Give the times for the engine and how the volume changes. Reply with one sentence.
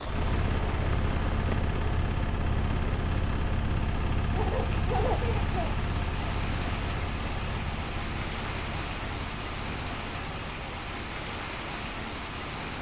The engine can be heard from 0.0 to 12.7 s, getting quieter.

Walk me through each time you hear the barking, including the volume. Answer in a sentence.
The barking can't be heard in this clip.